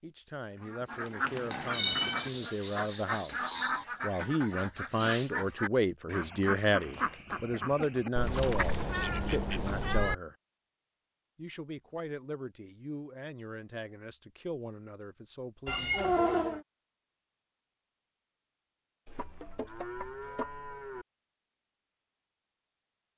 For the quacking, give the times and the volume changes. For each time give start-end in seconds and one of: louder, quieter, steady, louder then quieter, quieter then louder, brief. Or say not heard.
0.6-9.9 steady.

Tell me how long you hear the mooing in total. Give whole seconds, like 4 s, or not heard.
4 s.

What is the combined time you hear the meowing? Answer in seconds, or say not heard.
4 s.